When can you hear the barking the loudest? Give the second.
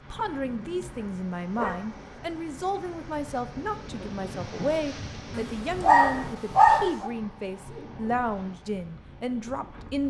7 s.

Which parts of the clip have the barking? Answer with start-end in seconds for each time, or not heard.
0.6-1.9, 5.3-7.1.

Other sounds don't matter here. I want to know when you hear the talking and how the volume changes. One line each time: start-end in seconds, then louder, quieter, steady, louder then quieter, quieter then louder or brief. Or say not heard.
0.1-10.0 steady.